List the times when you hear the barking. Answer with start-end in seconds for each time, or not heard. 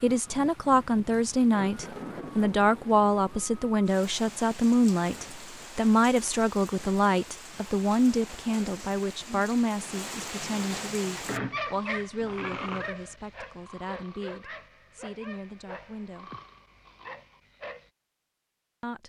11.3-17.9.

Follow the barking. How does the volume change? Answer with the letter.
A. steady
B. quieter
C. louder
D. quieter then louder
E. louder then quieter
B.